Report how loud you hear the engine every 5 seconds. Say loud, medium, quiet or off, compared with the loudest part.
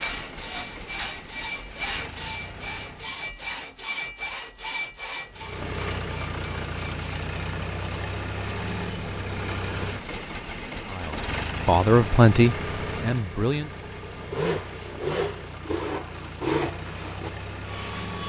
medium, loud, loud, medium.